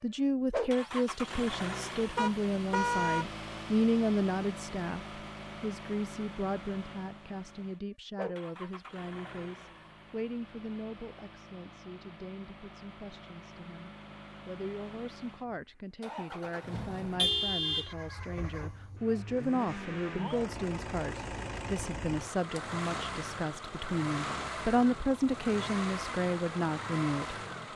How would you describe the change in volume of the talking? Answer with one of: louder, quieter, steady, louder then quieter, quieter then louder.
quieter then louder.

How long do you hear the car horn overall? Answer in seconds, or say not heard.
2 s.